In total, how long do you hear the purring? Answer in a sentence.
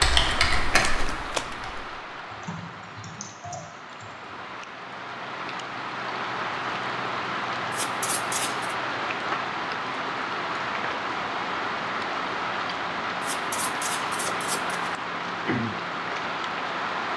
The purring can't be heard in this clip.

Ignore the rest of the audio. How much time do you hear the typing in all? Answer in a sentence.
The typing can be heard for 4 seconds in total.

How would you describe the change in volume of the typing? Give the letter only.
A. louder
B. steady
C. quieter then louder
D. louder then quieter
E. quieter
E.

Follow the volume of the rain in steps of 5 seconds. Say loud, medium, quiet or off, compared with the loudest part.
medium, loud, loud, loud.